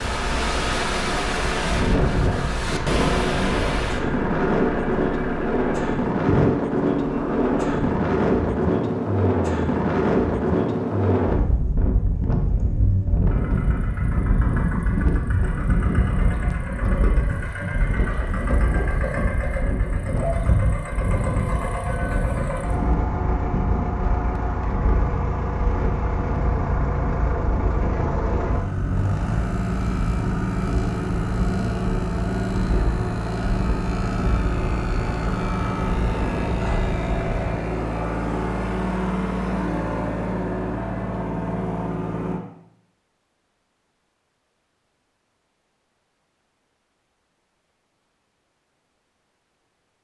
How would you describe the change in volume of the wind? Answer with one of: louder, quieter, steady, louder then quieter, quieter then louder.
quieter.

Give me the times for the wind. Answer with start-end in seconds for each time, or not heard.
0.0-37.6.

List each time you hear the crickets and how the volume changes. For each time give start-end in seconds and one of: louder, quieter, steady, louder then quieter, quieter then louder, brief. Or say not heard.
not heard.